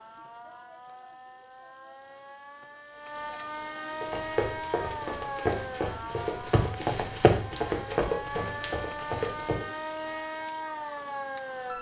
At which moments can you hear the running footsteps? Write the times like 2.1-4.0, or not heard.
4.0-9.7.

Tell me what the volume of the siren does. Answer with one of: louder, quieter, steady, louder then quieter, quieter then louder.
louder.